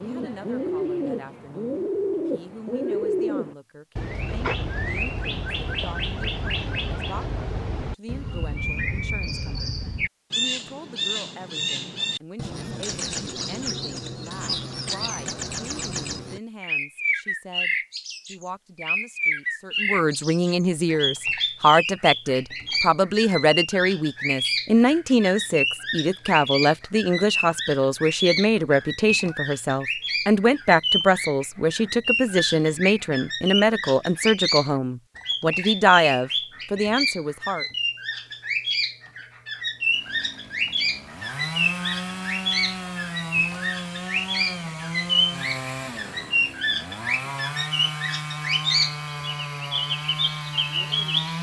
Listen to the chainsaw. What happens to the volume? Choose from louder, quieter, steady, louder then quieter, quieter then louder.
steady.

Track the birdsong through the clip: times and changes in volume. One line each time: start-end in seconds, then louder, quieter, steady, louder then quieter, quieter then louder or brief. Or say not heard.
0.0-51.3 steady.